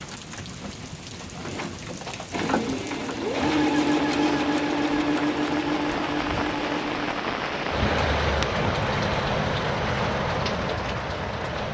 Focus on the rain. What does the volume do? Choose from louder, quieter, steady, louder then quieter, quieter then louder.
louder.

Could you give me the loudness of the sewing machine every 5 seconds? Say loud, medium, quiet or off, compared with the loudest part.
loud, loud, off.